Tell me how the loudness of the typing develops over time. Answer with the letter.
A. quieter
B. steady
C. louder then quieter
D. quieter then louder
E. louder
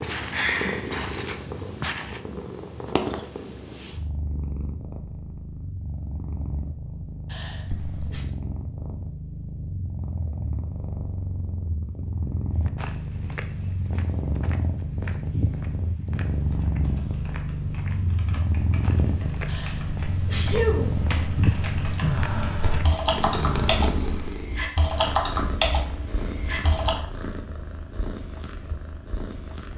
E.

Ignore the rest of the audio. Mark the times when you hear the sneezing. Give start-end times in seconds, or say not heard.
7.3-8.2, 19.4-20.9.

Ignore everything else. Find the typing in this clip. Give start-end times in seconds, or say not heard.
16.3-26.9.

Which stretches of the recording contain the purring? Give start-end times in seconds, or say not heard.
0.0-29.7.